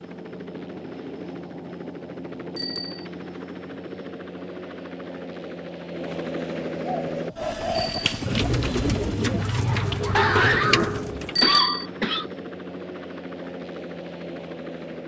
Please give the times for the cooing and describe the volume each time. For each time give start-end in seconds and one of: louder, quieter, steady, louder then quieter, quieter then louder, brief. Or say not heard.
6.8-11.3 louder.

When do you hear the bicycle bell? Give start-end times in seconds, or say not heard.
2.5-3.0, 7.7-8.2, 11.3-11.8.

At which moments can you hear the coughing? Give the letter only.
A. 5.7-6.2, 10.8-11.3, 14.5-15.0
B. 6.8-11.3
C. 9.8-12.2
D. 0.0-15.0
C.